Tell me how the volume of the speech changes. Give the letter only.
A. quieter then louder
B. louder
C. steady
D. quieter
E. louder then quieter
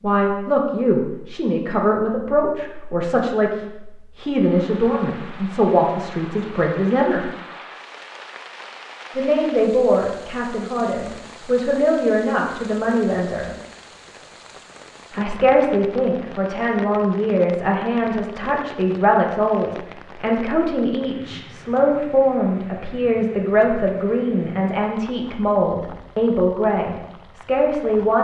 C.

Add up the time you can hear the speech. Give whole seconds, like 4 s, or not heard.
25 s.